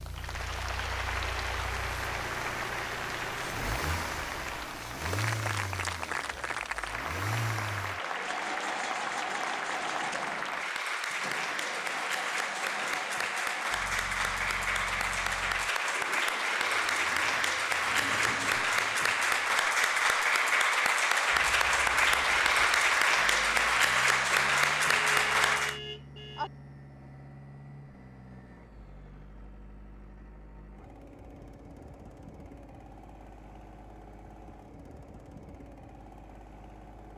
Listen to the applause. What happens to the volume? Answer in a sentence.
The loudness of the applause goes up.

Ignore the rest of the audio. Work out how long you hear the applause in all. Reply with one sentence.
You can hear the applause for 26 seconds altogether.